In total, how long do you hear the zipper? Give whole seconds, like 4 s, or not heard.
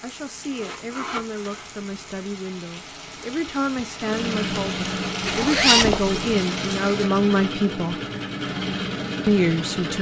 2 s.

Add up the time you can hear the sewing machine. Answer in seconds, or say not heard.
6 s.